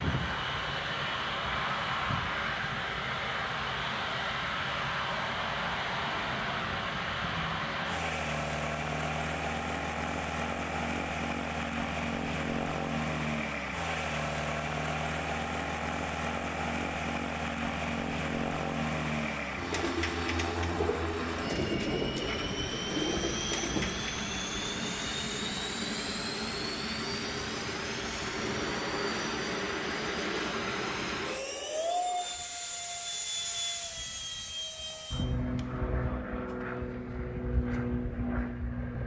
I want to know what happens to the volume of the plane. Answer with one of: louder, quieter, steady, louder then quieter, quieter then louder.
steady.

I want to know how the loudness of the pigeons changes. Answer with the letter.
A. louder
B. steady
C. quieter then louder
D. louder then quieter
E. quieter
A.